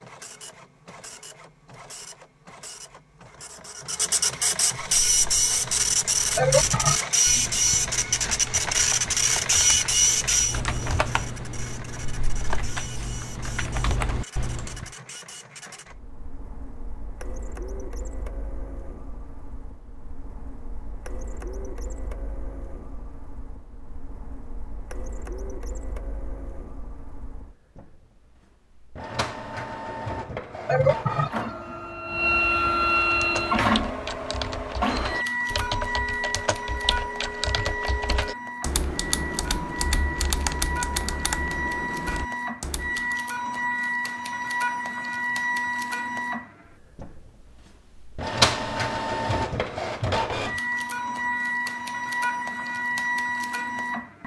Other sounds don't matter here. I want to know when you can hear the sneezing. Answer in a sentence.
The sneezing can't be heard in this clip.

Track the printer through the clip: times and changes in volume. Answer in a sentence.
The printer can be heard from 0.0 to 54.2 s, getting quieter then louder.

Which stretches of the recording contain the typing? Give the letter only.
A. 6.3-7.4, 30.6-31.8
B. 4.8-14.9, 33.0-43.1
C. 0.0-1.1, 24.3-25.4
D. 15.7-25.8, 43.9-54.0
B.